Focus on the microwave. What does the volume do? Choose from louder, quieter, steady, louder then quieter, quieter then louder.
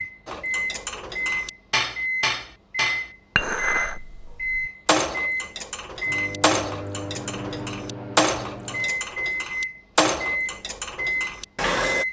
steady.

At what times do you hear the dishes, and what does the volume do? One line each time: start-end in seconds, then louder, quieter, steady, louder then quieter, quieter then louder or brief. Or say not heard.
0.2-12.0 steady.